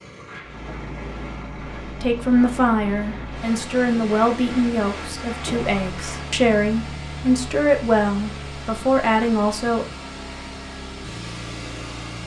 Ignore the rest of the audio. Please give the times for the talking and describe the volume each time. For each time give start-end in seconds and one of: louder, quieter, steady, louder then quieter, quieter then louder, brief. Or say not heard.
2.0-9.8 steady.